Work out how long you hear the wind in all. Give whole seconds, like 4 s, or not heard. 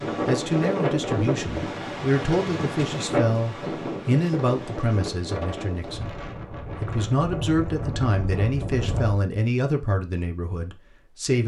9 s.